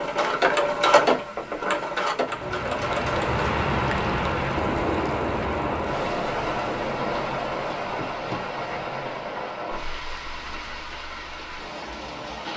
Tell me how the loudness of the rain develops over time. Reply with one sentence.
The loudness of the rain goes down.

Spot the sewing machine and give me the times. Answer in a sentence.
You can hear the sewing machine from 0.0 to 3.5 s.